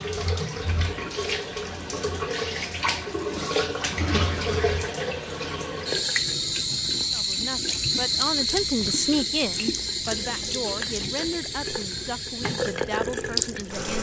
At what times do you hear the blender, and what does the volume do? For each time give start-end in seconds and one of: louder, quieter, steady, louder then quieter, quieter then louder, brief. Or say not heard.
not heard.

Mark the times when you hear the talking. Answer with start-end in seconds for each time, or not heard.
7.1-13.9.